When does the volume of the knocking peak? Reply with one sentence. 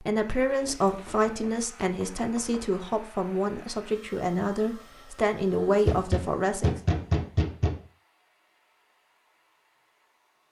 The volume of the knocking peaks at 7 seconds.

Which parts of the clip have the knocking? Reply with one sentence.
The knocking can be heard from 0.7 to 2.8 s and from 5.8 to 7.8 s.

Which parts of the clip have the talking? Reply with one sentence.
You can hear the talking from 0.0 to 6.7 s.